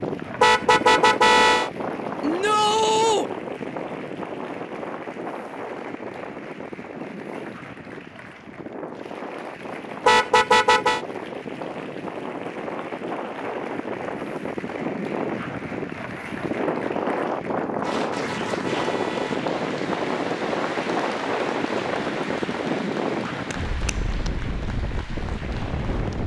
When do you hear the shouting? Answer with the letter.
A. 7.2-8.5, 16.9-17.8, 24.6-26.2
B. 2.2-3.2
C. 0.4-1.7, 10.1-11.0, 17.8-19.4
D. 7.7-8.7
B.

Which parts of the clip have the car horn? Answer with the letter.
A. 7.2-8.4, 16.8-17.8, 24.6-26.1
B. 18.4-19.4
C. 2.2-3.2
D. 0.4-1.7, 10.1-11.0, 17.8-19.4
D.